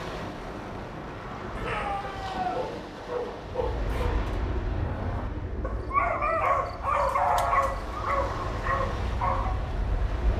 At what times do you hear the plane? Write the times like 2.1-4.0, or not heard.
3.5-10.3.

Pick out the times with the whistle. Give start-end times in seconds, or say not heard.
not heard.